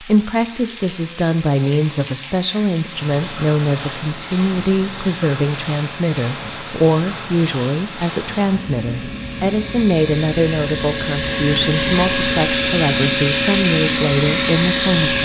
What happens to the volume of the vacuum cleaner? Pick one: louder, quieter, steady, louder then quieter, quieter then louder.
louder.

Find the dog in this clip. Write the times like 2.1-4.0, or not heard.
not heard.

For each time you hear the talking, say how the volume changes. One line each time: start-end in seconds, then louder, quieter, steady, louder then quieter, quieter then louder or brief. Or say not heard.
0.0-15.2 steady.